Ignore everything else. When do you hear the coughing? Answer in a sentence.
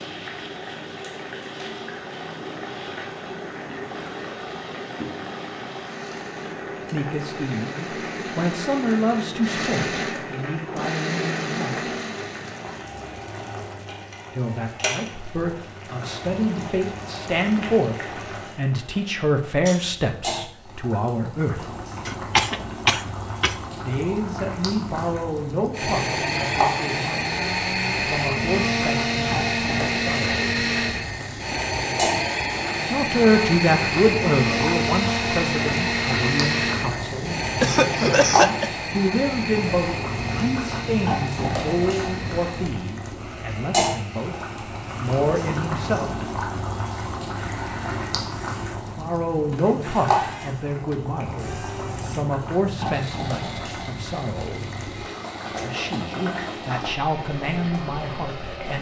You can hear the coughing from 22.1 to 23.6 s and from 37.5 to 38.7 s.